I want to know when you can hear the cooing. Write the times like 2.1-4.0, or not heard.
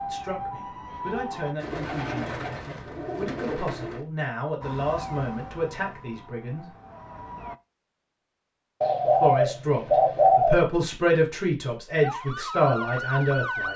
1.6-4.0, 8.8-10.6.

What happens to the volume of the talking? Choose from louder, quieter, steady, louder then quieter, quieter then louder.
louder.